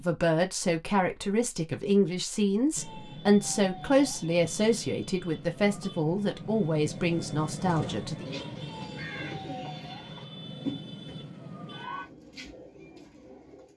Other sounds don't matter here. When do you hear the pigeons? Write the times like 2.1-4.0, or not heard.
7.5-13.7.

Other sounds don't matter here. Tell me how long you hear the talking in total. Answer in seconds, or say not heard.
8 s.